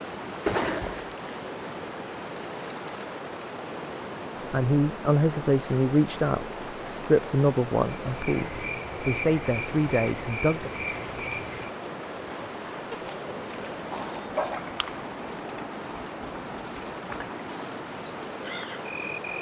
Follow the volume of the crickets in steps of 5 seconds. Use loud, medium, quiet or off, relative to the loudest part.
off, loud, loud, loud.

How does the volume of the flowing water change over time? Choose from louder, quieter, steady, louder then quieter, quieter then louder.
steady.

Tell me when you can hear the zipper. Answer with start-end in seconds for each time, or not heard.
0.5-1.1.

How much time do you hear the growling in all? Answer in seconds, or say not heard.
2 s.